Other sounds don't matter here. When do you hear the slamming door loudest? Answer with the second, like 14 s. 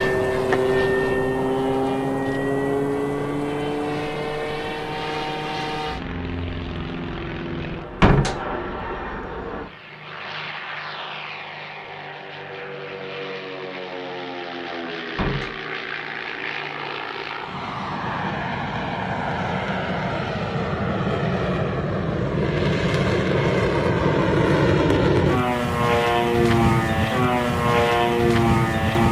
8 s.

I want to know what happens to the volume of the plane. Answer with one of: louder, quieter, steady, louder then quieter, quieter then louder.
quieter then louder.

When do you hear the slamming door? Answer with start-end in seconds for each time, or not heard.
8.0-8.4, 15.2-15.6.